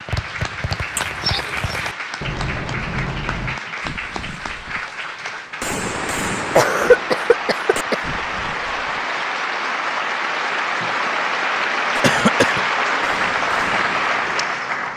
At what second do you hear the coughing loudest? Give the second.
7 s.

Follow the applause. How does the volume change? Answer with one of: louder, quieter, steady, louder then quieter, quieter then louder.
louder.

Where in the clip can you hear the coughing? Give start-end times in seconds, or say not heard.
0.9-1.8, 6.5-8.1, 12.0-12.7.